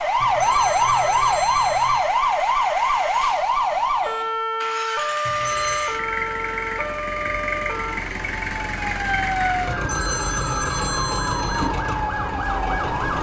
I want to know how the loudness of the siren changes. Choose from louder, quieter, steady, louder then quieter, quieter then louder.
quieter.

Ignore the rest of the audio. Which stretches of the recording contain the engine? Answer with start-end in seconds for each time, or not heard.
0.0-13.1.